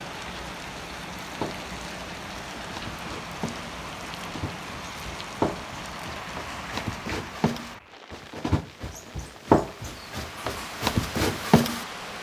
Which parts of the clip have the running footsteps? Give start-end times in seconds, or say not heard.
1.4-11.8.